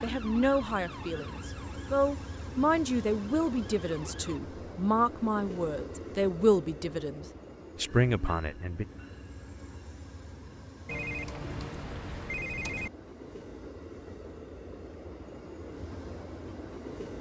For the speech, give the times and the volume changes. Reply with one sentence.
You can hear the speech from 0.0 to 8.8 s, at a steady volume.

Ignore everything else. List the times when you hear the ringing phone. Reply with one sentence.
The ringing phone can be heard from 10.8 to 12.9 s.